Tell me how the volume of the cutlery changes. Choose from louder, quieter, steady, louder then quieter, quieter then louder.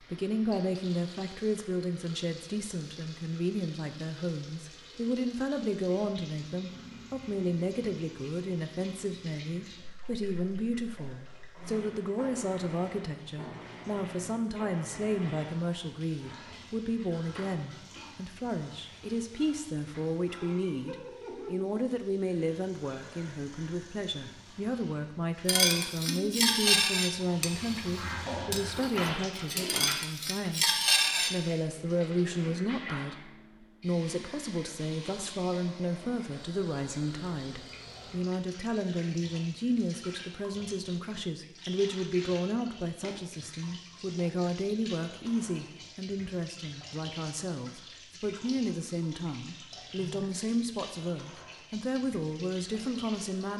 quieter then louder.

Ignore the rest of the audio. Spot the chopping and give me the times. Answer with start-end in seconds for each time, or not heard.
not heard.